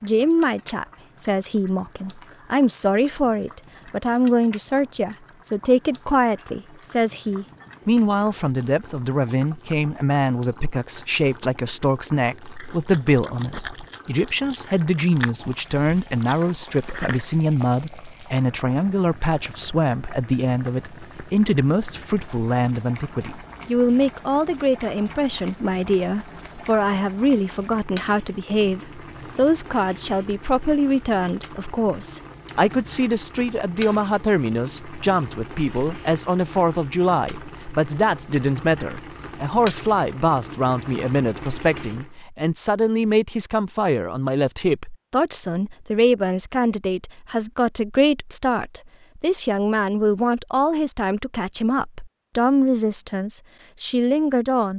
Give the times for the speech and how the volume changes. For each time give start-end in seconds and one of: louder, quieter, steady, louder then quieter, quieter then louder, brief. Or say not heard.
0.0-54.7 steady.